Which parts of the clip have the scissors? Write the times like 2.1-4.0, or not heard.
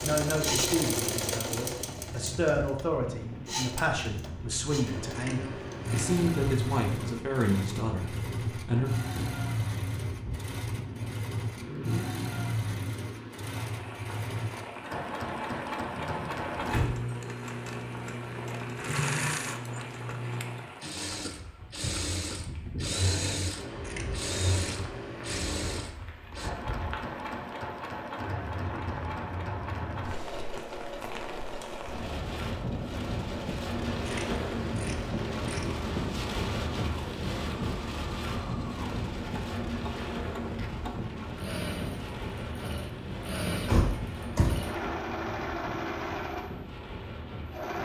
4.8-6.3, 23.6-25.9, 33.9-36.0.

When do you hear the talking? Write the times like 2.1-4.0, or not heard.
0.0-8.9.